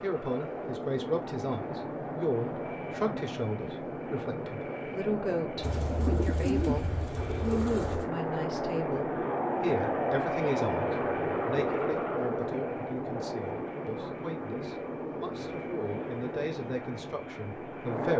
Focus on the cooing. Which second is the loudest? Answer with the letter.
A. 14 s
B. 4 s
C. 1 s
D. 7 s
D.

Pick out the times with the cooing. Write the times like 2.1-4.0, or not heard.
5.6-8.1.